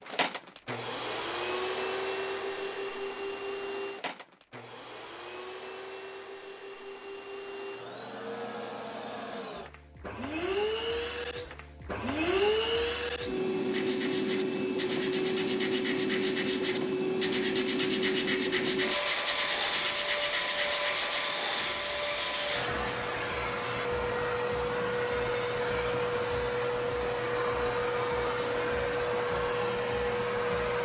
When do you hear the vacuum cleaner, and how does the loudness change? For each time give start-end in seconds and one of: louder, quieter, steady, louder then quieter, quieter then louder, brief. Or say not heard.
0.0-30.8 louder.